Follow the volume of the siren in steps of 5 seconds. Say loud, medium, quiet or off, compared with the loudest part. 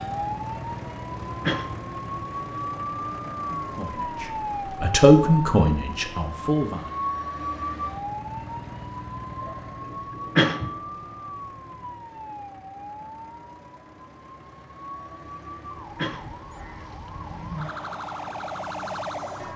loud, loud, medium, loud.